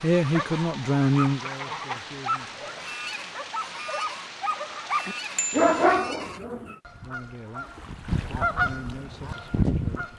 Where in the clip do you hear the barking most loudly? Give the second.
6 s.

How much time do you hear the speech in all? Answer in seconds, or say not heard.
6 s.